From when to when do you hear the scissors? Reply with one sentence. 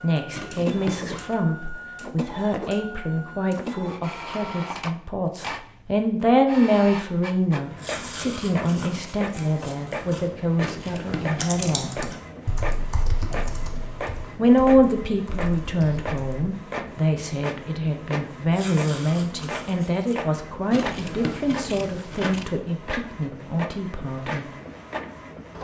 The scissors can be heard from 0.3 to 1.4 s, from 10.6 to 12.2 s and from 20.7 to 22.6 s.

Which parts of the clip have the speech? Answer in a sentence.
You can hear the speech from 0.0 to 12.1 s and from 14.3 to 24.4 s.